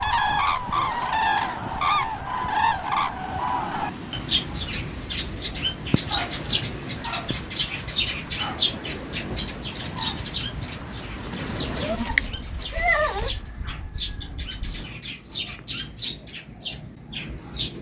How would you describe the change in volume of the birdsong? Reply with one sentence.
The loudness of the birdsong goes down.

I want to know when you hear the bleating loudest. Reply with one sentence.
The loudest moment of the bleating is at 13 seconds.